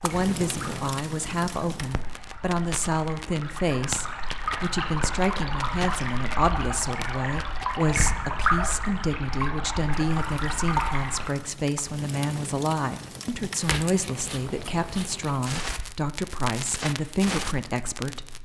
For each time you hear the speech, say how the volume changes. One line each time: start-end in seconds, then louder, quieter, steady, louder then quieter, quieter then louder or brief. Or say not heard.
0.0-18.4 steady.